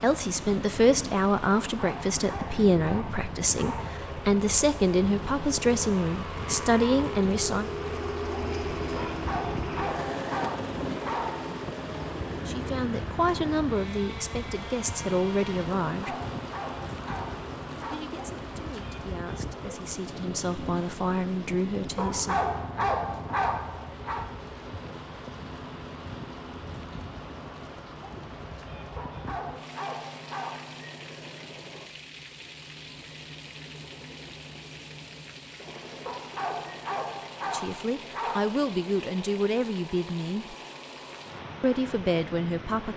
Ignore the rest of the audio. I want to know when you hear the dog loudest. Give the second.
23 s.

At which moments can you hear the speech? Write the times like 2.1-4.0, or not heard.
0.0-7.7, 12.4-16.1, 17.9-22.4, 37.4-40.5, 41.6-42.9.